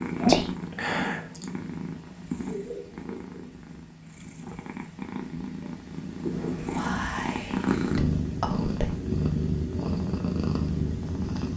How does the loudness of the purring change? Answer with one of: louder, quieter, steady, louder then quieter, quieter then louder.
quieter then louder.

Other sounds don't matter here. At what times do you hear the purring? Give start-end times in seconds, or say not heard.
0.0-11.5.